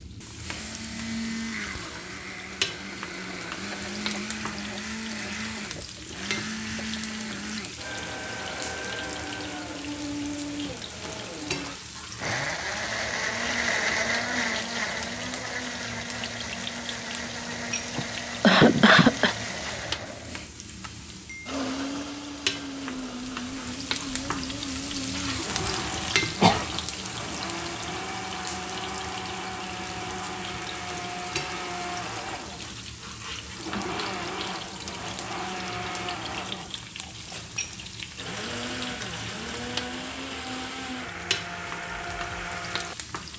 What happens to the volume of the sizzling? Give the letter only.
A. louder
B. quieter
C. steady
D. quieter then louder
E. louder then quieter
C.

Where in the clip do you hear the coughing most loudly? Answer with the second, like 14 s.
19 s.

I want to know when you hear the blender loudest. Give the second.
14 s.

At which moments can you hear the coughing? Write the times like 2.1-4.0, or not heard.
17.9-19.4, 25.6-26.6.